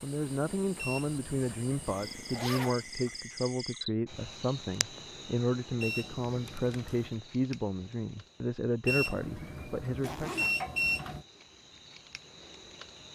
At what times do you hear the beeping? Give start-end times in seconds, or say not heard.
0.8-2.0, 5.8-7.2, 8.8-11.2.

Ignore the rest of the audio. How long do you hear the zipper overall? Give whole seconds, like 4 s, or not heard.
2 s.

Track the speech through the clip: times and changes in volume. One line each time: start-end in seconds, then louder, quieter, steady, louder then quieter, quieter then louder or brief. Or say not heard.
0.0-10.3 steady.